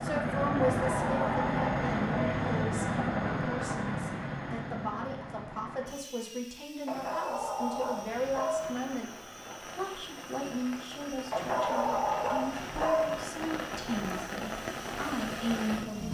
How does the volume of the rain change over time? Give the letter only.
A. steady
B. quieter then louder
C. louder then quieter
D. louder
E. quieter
D.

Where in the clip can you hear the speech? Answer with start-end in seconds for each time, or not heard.
0.0-16.0.